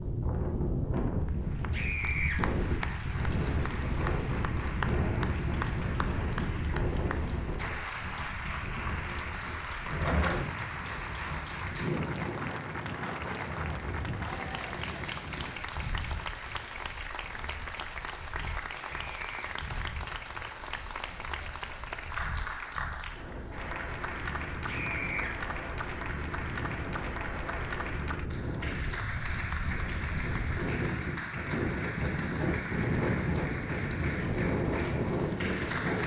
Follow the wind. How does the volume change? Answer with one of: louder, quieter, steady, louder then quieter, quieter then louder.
quieter then louder.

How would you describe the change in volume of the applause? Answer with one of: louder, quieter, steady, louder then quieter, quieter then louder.
steady.